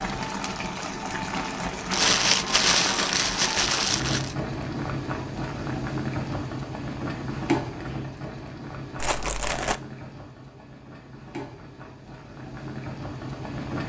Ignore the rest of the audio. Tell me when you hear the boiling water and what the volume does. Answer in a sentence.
The boiling water can be heard from 0.0 to 13.8 s, getting quieter.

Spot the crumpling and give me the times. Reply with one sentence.
The crumpling can be heard from 1.9 to 4.3 s and from 8.9 to 9.8 s.